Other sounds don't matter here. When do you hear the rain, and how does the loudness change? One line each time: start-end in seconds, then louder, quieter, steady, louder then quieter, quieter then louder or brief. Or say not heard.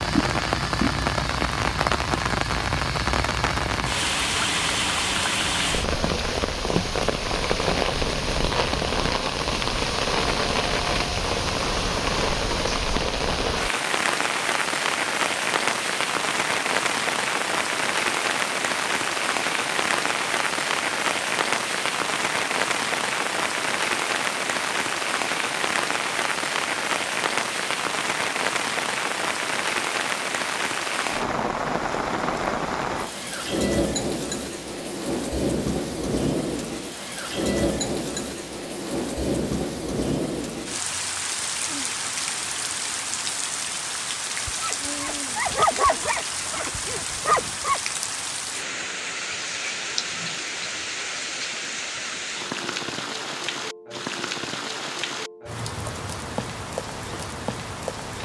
0.0-58.2 quieter.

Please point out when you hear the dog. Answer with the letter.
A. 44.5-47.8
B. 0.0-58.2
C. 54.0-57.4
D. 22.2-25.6
A.